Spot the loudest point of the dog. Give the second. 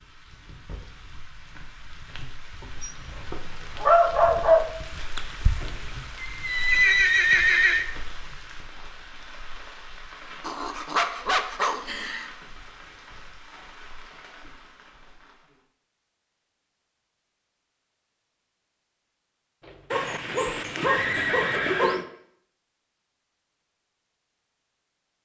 4 s.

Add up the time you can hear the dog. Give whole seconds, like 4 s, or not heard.
6 s.